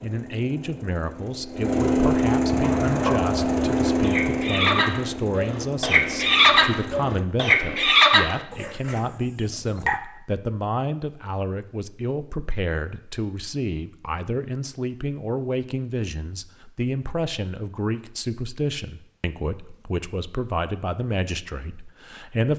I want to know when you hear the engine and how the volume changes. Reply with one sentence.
The engine can be heard from 0.0 to 7.2 s, getting louder then quieter.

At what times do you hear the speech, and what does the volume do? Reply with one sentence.
You can hear the speech from 0.0 to 22.5 s, at a steady volume.